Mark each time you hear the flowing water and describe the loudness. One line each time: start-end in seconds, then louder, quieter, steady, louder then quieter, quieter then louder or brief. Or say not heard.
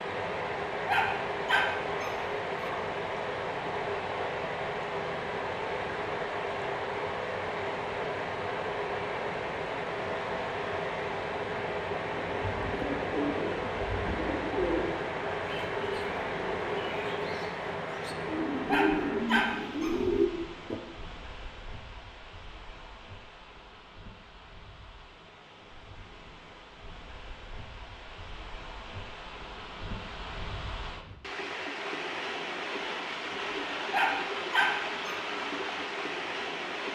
0.0-36.9 quieter then louder.